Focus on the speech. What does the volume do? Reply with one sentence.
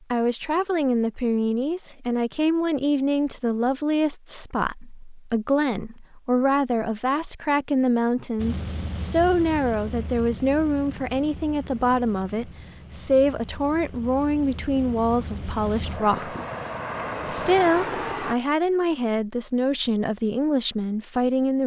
The loudness of the speech stays about the same.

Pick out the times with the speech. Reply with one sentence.
The speech can be heard from 0.1 to 16.4 s and from 17.2 to 21.6 s.